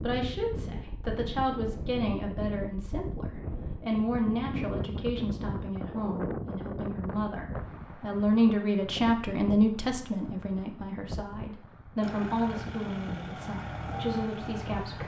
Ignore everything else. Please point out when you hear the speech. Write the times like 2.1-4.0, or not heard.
0.0-15.0.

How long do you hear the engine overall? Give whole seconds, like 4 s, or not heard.
3 s.